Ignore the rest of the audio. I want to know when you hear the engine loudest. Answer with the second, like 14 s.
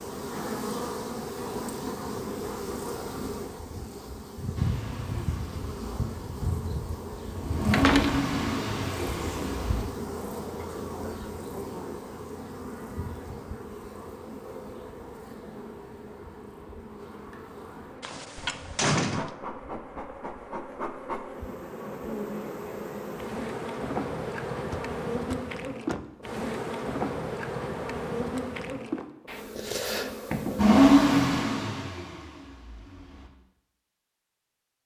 31 s.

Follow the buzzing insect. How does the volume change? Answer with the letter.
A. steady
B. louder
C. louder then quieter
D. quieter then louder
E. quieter
D.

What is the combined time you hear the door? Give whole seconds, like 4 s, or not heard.
3 s.